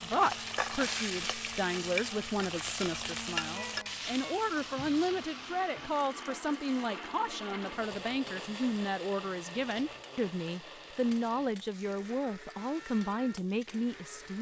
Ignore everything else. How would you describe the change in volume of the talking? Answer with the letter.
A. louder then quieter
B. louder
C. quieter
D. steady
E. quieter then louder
D.